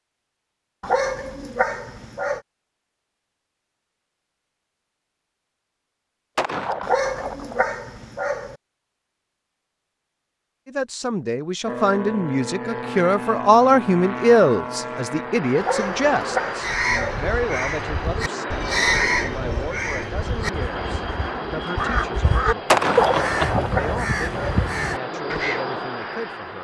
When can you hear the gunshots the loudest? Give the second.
23 s.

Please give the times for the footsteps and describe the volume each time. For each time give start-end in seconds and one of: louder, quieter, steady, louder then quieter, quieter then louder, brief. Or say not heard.
not heard.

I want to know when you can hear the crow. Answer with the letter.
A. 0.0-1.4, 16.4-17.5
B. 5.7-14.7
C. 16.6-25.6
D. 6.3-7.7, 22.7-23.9
C.